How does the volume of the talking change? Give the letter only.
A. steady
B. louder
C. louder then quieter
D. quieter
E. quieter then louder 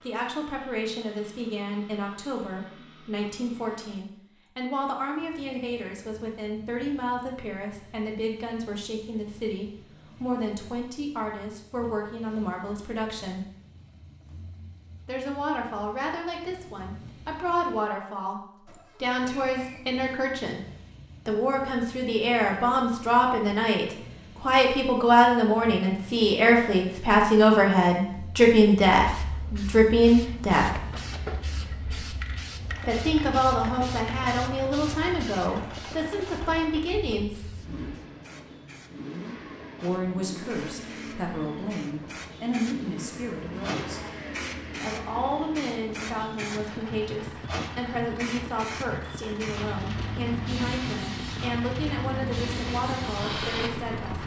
C.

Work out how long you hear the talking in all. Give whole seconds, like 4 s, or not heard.
47 s.